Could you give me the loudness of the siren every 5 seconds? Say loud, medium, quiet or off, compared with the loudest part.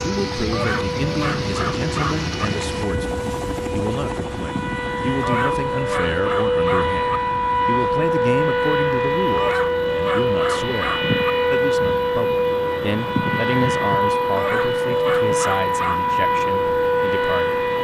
medium, loud, loud, loud.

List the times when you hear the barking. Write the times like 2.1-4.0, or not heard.
0.5-2.2, 5.2-7.0, 9.3-11.1, 14.3-16.1.